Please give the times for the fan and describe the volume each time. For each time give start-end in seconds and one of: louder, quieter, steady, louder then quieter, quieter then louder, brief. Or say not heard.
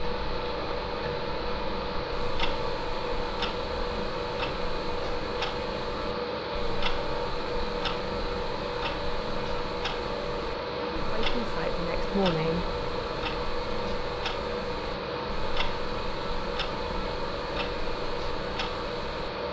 0.0-19.4 steady.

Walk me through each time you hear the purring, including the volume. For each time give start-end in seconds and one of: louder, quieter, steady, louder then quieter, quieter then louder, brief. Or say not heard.
not heard.